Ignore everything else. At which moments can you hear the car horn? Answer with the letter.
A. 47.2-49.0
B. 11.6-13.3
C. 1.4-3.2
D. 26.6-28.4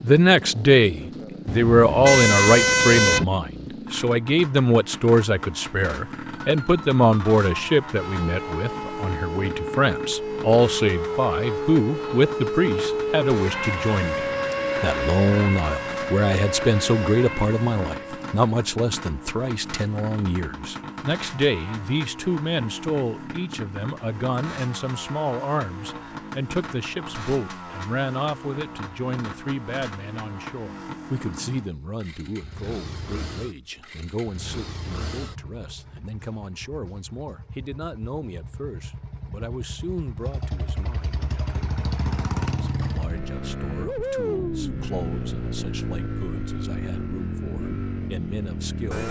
C.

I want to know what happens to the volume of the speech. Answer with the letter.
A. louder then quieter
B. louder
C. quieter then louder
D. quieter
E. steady
D.